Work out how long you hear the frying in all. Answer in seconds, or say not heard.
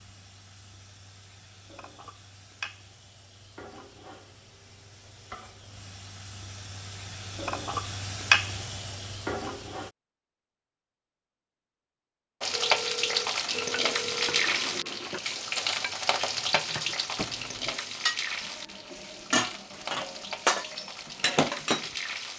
20 s.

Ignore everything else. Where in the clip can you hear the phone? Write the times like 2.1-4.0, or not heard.
12.5-14.5.